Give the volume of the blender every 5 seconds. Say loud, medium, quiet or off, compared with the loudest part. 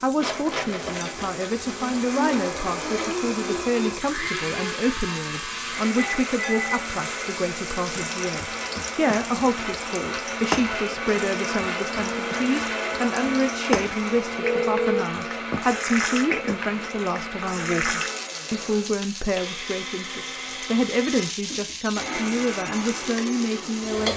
loud, loud, loud, medium, medium.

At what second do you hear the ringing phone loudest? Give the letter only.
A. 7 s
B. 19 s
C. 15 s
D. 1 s
C.